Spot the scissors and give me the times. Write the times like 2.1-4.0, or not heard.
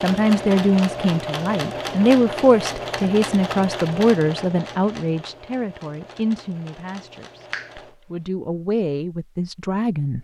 not heard.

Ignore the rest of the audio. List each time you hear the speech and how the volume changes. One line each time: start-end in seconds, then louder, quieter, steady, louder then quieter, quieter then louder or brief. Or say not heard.
0.0-10.1 quieter.